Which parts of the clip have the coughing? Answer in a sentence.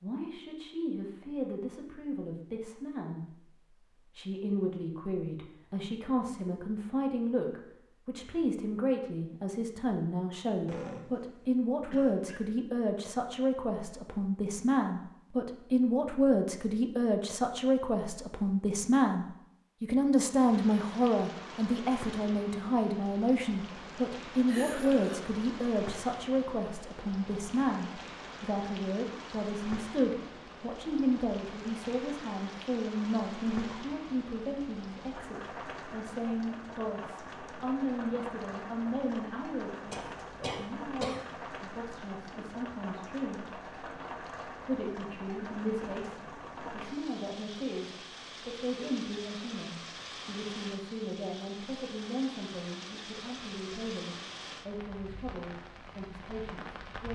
The coughing can be heard from 10.7 to 12.4 s, from 24.4 to 25.4 s and from 39.9 to 41.2 s.